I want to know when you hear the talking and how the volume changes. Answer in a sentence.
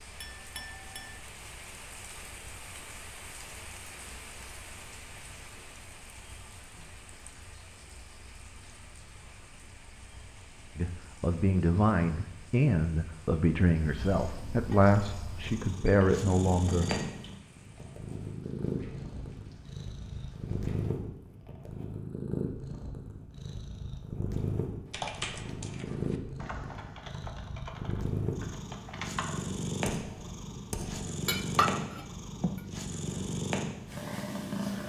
The talking can be heard from 10.8 to 17.1 s, at a steady volume.